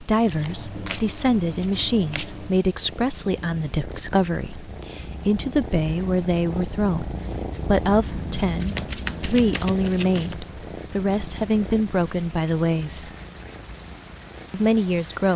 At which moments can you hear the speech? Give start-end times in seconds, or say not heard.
0.0-13.1, 14.5-15.3.